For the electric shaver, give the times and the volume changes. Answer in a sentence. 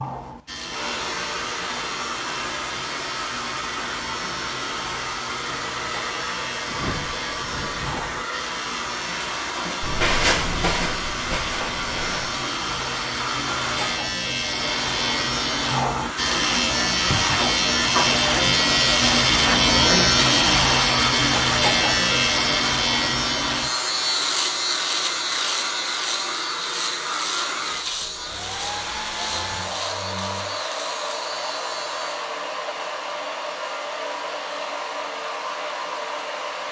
The electric shaver can be heard from 0.0 to 32.3 s, getting louder then quieter.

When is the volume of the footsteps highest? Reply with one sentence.
The loudest moment of the footsteps is at 10 seconds.